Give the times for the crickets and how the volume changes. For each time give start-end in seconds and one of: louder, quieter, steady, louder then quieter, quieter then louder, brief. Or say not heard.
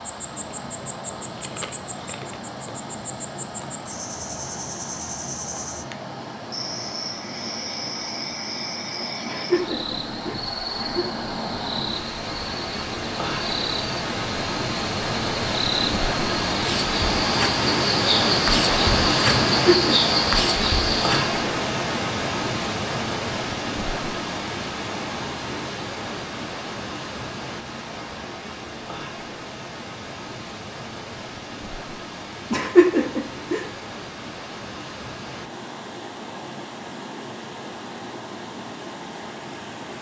0.0-21.4 louder.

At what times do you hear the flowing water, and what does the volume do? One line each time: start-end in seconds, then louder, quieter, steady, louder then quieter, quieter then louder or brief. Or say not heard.
0.0-39.9 louder then quieter.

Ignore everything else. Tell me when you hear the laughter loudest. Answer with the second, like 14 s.
33 s.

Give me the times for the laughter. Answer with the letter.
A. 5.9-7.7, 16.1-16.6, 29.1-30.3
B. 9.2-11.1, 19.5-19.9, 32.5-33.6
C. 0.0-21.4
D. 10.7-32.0
B.